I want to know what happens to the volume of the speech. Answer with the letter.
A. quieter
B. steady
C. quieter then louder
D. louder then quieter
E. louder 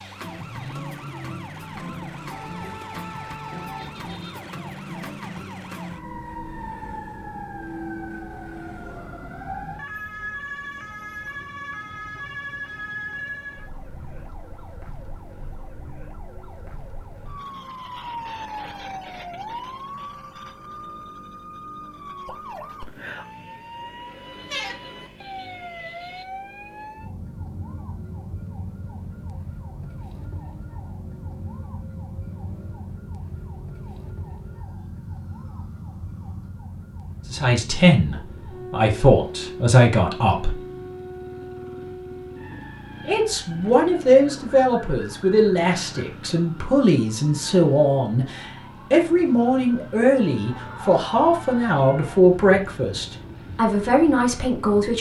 B.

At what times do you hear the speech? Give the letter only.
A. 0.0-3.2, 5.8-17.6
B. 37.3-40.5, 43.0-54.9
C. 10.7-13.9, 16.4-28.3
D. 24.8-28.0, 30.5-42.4
B.